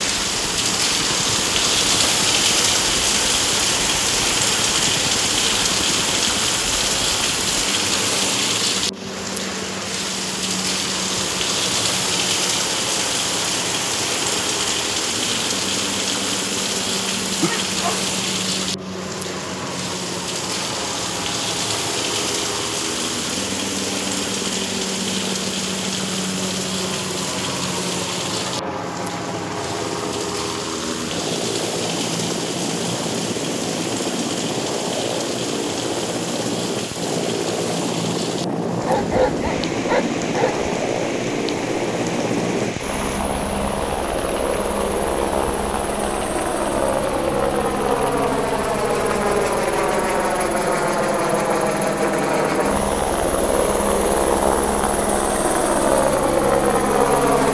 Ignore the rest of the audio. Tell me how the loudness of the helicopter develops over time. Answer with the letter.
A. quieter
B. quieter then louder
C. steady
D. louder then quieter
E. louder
E.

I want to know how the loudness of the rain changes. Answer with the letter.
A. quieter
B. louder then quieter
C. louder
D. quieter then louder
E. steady
A.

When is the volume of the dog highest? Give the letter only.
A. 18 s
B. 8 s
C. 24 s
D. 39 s
D.